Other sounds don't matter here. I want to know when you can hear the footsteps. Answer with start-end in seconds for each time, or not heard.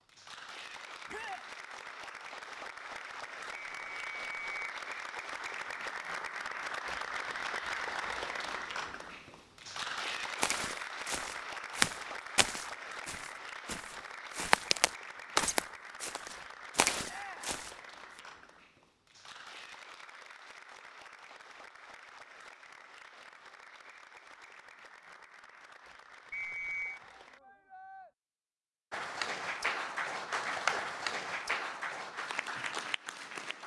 10.4-17.7.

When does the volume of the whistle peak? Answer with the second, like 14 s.
27 s.